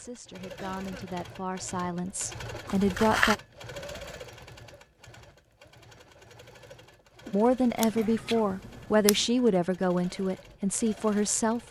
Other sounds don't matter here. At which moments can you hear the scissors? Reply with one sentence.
The scissors can be heard from 2.6 to 3.4 s and from 7.8 to 9.2 s.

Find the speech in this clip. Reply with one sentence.
The speech can be heard from 0.0 to 3.4 s and from 7.3 to 11.6 s.